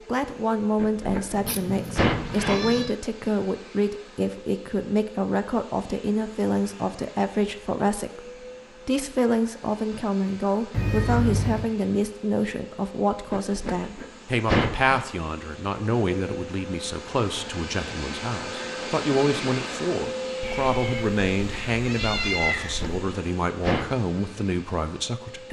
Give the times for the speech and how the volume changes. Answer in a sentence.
You can hear the speech from 0.1 to 25.4 s, at a steady volume.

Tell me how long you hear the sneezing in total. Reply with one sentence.
You can hear the sneezing for 5 seconds altogether.